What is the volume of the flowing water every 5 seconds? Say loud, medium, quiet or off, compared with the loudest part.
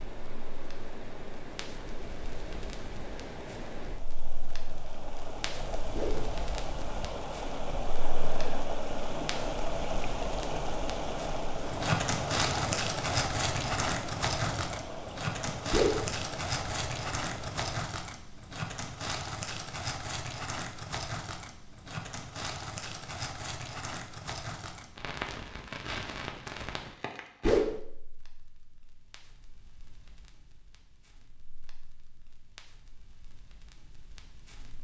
medium, loud, loud, medium, off, off, off.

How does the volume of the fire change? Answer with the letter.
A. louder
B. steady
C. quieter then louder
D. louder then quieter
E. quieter
D.